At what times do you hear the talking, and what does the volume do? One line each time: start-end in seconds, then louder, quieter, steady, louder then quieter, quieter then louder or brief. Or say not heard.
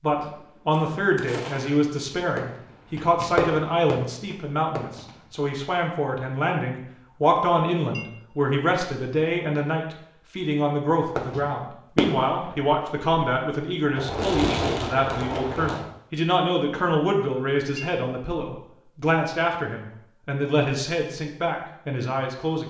0.0-22.6 steady.